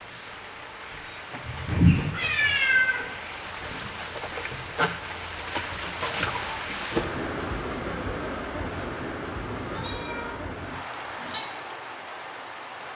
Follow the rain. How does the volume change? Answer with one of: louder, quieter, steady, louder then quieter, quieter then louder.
louder then quieter.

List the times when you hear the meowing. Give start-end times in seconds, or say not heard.
1.4-3.0, 9.4-11.4.